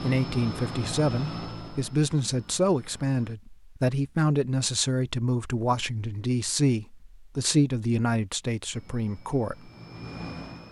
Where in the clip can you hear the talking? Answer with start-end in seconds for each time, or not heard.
0.0-9.7.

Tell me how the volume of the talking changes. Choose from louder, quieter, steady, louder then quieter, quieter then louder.
steady.